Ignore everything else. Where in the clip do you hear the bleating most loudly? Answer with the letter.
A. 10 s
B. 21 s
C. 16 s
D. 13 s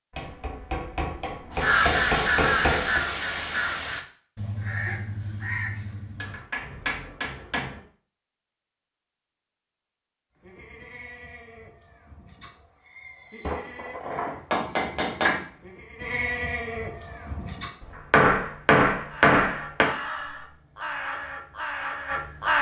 C.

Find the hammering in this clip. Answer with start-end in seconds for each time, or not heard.
0.1-3.0, 6.2-7.8, 13.4-15.4, 17.8-19.9.